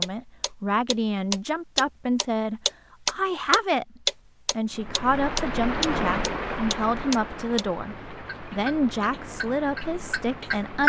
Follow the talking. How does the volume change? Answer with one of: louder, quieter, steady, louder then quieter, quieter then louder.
steady.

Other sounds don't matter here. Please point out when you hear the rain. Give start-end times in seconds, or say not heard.
4.7-10.8.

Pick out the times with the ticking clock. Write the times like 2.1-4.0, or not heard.
0.0-7.7, 8.2-10.8.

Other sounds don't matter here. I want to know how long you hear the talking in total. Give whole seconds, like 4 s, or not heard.
11 s.